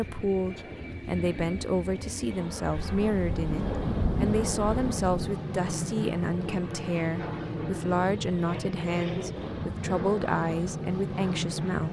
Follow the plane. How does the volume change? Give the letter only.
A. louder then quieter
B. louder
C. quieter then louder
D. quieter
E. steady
B.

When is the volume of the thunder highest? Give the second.
4 s.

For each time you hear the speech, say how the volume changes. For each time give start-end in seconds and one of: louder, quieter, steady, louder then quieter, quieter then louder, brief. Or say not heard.
0.0-11.8 steady.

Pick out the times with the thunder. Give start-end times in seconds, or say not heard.
2.8-5.3.